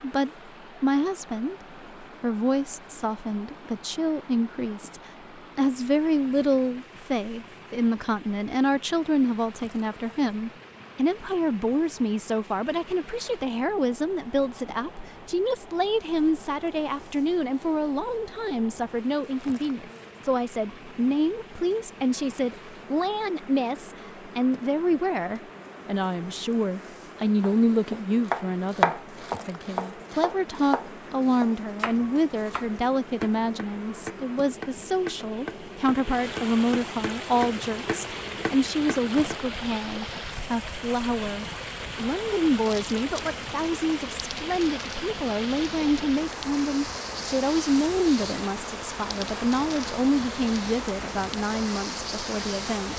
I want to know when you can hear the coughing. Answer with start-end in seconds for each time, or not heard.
not heard.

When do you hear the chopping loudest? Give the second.
29 s.